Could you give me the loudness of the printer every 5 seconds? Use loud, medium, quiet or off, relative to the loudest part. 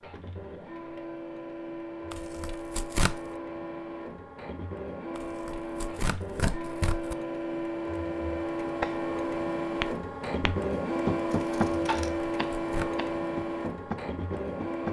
medium, loud, loud.